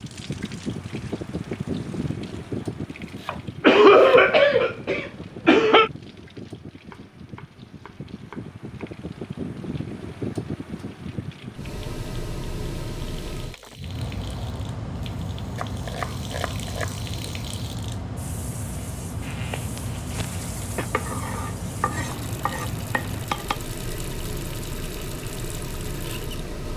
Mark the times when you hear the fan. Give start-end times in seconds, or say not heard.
0.0-26.7.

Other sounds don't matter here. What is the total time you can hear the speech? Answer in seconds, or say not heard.
not heard.